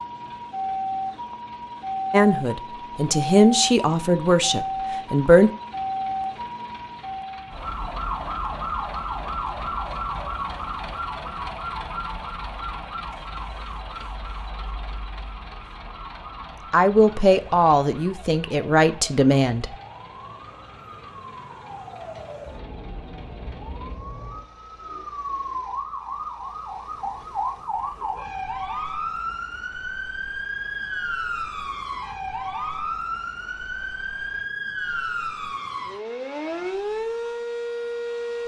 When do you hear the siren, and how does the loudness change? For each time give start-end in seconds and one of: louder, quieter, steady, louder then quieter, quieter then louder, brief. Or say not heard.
0.0-38.4 quieter then louder.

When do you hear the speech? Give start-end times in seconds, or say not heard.
2.1-5.5, 16.7-19.7.